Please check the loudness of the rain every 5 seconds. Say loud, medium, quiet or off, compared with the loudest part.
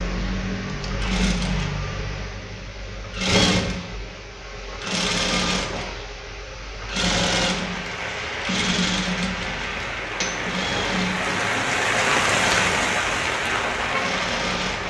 off, medium, loud.